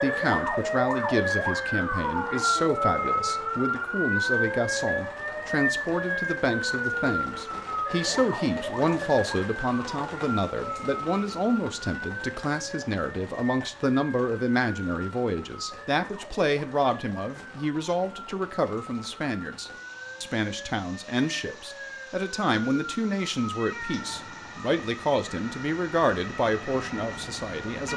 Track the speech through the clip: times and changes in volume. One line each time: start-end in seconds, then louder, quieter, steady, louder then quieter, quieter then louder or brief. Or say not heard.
0.0-27.9 steady.